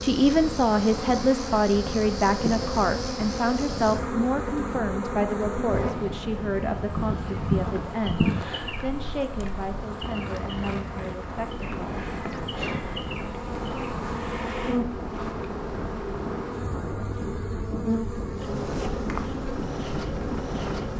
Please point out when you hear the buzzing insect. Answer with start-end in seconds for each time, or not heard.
0.0-20.9.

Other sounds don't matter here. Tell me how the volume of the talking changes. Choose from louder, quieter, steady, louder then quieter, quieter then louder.
quieter.